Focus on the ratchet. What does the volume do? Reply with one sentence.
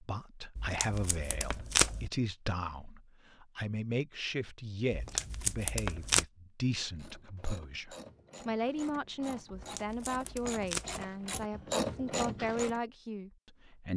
The volume of the ratchet goes up.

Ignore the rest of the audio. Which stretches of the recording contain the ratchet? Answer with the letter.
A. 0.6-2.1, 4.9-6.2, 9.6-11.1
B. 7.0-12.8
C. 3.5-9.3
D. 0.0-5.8
B.